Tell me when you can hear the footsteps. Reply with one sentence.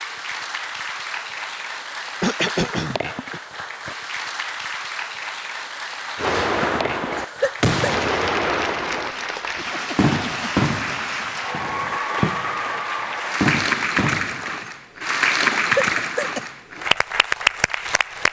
You can't hear the footsteps here.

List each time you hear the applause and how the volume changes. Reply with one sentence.
The applause can be heard from 0.0 to 18.2 s, getting louder.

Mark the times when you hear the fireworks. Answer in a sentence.
The fireworks can be heard from 6.2 to 14.6 s.